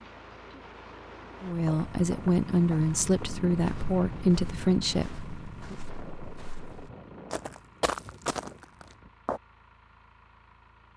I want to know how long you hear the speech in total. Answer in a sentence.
The speech can be heard for 4 seconds in total.